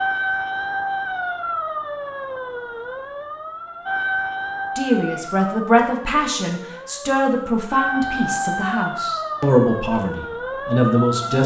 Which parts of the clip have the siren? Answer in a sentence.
You can hear the siren from 0.0 to 11.4 s.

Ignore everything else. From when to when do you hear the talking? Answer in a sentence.
The talking can be heard from 4.8 to 11.4 s.